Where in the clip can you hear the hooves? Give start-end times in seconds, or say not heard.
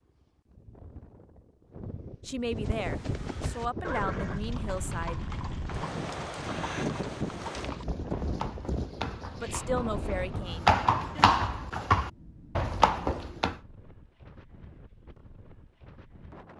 2.5-13.6.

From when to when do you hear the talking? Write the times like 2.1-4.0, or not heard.
2.2-5.2, 9.3-11.2.